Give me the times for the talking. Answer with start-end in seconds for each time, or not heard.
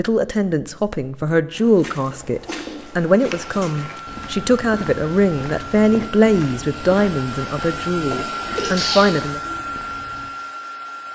0.0-9.4.